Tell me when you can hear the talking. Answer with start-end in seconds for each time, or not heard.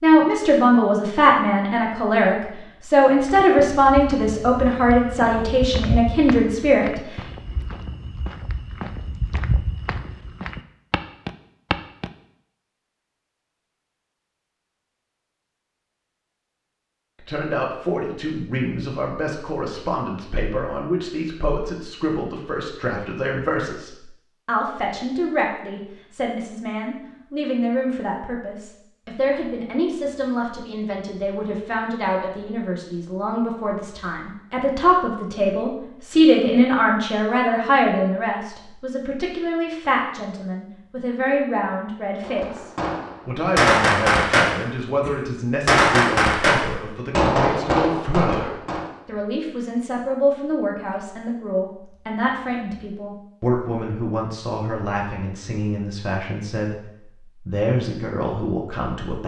0.0-7.0, 17.2-59.2.